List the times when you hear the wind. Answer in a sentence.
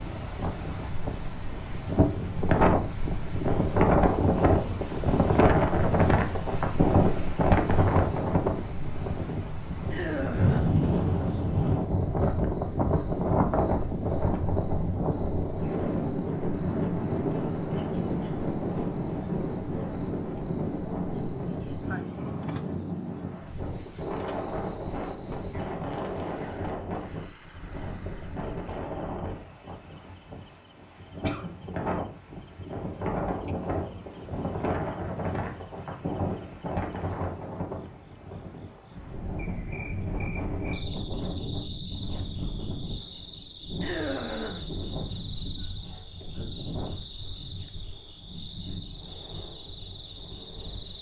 You can hear the wind from 0.0 to 50.9 s.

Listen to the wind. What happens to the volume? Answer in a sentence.
The volume of the wind goes down.